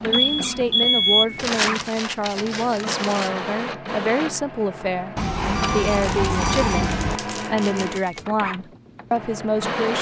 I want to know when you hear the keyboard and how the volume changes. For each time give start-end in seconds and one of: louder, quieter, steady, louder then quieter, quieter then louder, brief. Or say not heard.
not heard.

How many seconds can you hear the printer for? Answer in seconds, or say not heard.
10 s.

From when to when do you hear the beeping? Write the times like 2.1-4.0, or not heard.
0.1-1.2, 5.2-7.2.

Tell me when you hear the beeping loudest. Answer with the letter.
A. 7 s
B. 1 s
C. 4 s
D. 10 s
B.